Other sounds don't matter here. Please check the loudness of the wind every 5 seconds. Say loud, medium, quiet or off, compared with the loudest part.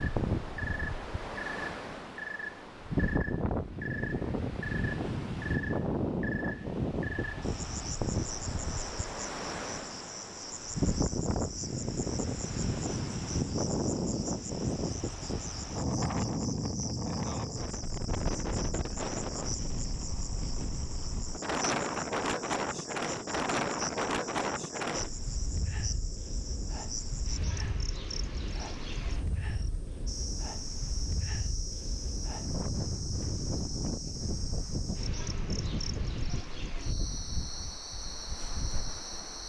loud, loud, loud, loud, loud, medium, medium, medium.